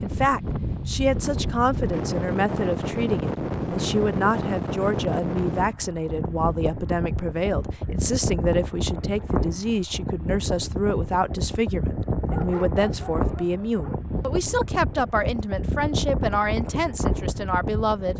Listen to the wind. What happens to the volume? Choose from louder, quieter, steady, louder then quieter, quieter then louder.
steady.